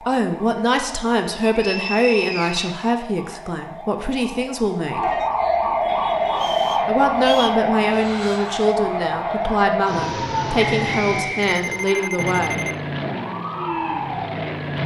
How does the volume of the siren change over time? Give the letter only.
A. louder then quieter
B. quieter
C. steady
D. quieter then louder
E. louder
A.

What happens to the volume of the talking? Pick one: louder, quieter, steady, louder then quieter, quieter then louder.
steady.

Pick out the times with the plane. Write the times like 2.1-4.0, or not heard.
5.8-8.8, 12.2-14.8.